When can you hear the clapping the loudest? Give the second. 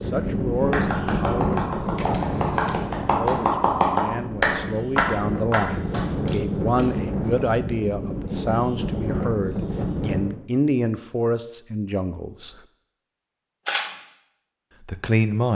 4 s.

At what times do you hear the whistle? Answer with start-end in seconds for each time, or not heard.
not heard.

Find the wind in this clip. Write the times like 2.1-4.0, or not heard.
0.0-10.4.